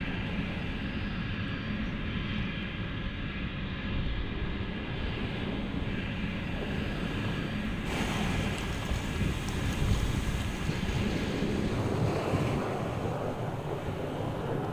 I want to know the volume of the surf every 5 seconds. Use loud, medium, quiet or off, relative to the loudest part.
medium, loud, loud.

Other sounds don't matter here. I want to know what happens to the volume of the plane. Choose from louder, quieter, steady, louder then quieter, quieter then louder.
steady.